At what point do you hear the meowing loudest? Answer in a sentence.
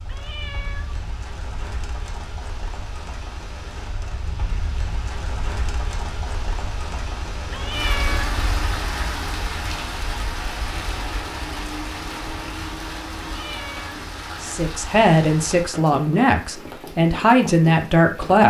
The volume of the meowing peaks at 8 seconds.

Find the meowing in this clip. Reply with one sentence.
You can hear the meowing from 0.1 to 1.1 s, from 7.5 to 8.4 s and from 13.3 to 14.0 s.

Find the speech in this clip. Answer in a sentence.
You can hear the speech from 14.4 to 18.4 s.